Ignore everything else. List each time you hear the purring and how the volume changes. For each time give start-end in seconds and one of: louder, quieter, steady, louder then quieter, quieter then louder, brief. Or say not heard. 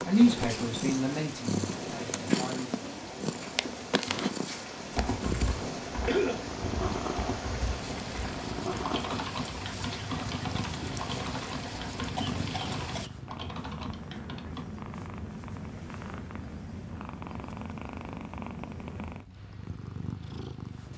0.0-20.9 quieter.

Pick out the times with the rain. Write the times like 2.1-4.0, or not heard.
0.0-13.1.